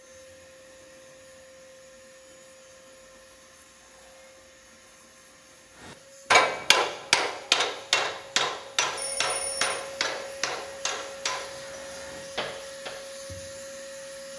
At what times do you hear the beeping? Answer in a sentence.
You can hear the beeping from 8.9 to 9.8 s.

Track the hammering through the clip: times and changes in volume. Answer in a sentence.
The hammering can be heard from 6.3 to 12.9 s, getting quieter.